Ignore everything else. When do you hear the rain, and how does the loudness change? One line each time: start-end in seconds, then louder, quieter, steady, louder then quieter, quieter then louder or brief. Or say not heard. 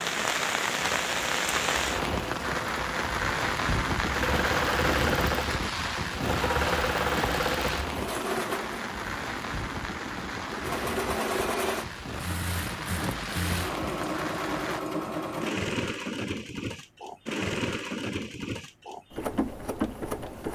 0.0-14.8 quieter.